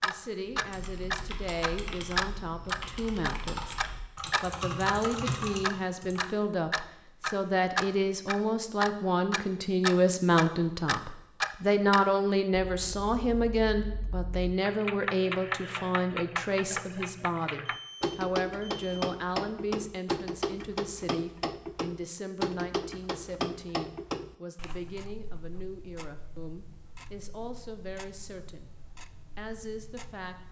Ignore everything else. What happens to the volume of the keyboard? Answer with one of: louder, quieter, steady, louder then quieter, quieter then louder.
louder.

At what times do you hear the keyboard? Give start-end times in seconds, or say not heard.
0.5-6.3.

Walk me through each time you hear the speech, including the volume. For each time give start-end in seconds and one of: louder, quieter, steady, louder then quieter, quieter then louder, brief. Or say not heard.
0.0-28.7 louder then quieter
29.4-30.4 brief.